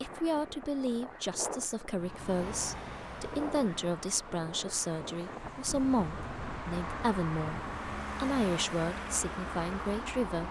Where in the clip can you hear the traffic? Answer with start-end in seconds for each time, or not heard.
1.9-10.4.